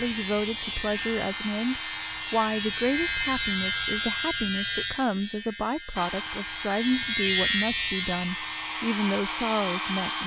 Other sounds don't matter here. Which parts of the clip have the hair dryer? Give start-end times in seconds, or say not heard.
0.0-4.1, 6.0-10.2.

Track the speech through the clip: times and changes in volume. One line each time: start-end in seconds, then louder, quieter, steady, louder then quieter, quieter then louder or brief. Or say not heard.
0.0-10.2 steady.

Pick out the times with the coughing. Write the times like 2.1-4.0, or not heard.
not heard.